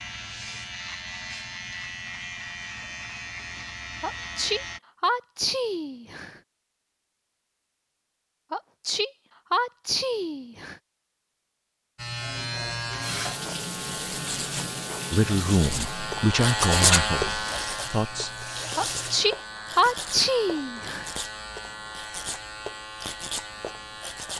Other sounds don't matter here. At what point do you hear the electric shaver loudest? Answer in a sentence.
The volume of the electric shaver peaks at 17 seconds.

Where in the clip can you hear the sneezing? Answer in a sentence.
You can hear the sneezing from 4.0 to 6.4 s, from 8.5 to 10.8 s and from 18.8 to 21.1 s.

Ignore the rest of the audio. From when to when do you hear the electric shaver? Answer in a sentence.
You can hear the electric shaver from 0.0 to 4.8 s and from 11.9 to 24.3 s.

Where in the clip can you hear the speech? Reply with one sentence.
The speech can be heard from 15.1 to 18.4 s.